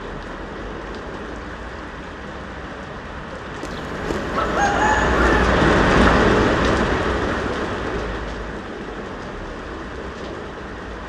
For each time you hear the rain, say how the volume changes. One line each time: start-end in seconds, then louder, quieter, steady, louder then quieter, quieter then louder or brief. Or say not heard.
0.0-11.0 louder then quieter.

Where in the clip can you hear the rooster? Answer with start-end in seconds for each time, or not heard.
3.6-5.5.